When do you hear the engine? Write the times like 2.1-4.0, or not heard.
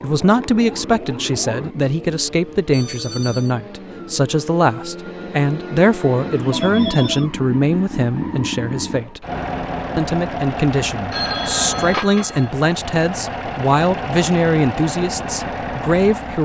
0.2-16.3.